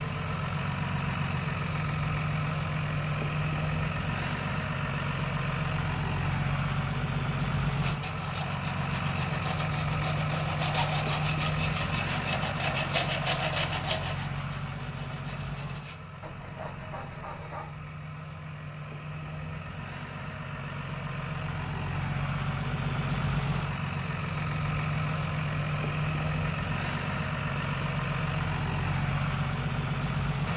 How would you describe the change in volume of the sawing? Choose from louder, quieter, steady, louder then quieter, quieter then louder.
louder then quieter.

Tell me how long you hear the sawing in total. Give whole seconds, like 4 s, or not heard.
10 s.